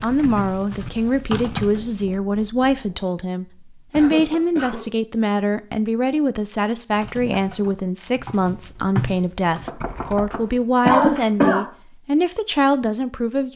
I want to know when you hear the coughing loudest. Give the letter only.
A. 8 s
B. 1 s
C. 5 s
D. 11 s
D.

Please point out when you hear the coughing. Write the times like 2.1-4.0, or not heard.
3.9-4.8, 10.8-11.7.